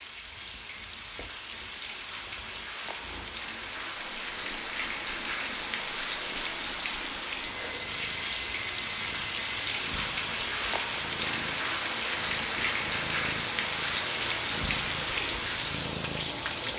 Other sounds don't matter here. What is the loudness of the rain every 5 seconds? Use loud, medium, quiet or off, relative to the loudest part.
medium, loud, loud, loud.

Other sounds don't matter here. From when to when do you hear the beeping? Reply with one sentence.
The beeping can be heard from 7.4 to 9.6 s.